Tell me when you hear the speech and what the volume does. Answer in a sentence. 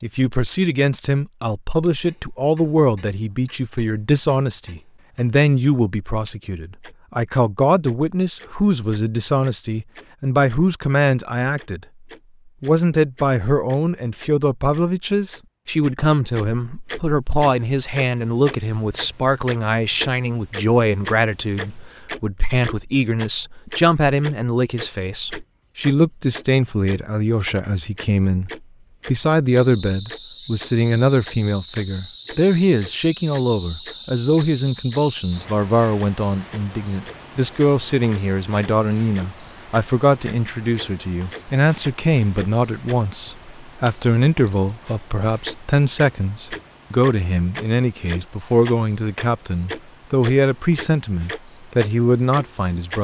The speech can be heard from 0.0 to 11.8 s, at a steady volume; and from 12.6 to 52.9 s, at a steady volume.